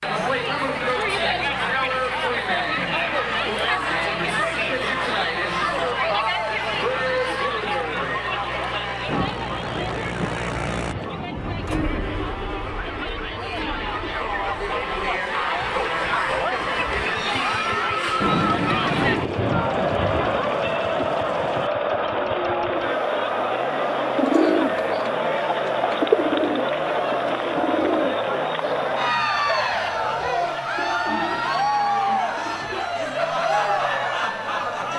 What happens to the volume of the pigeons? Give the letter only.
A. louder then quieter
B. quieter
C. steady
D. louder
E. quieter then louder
B.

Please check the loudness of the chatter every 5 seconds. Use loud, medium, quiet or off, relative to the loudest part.
loud, loud, medium, loud, loud, loud, loud.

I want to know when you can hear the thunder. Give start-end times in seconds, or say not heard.
9.1-12.0, 18.2-21.7.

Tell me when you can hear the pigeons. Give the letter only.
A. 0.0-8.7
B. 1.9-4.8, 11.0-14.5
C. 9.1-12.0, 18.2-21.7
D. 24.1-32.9
D.